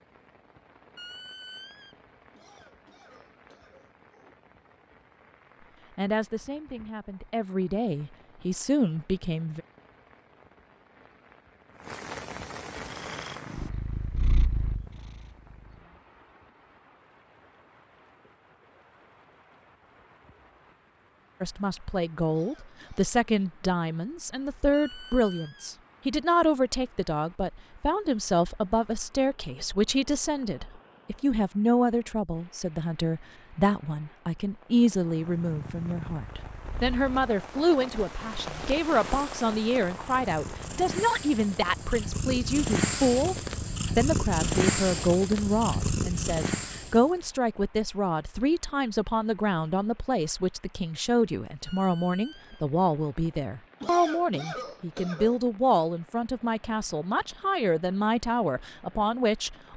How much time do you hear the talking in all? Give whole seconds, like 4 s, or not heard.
41 s.